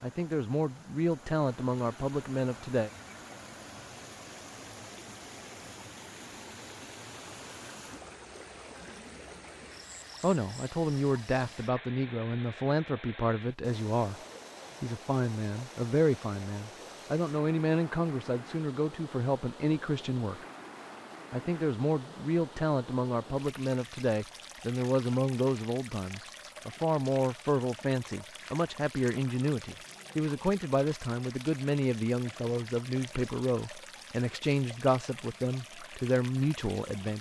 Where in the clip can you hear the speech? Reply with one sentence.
The speech can be heard from 0.0 to 2.9 s, from 10.2 to 14.2 s, from 14.8 to 20.4 s and from 21.3 to 37.1 s.